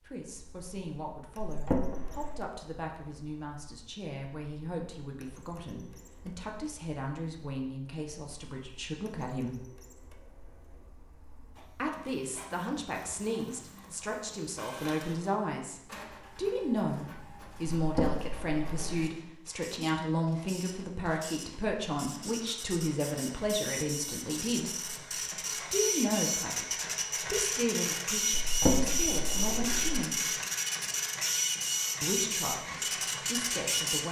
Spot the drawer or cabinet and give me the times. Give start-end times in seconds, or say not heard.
1.4-2.5, 17.8-18.9, 28.4-30.1.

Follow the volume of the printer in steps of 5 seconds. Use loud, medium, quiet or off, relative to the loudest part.
quiet, quiet, quiet, quiet, medium, loud, loud.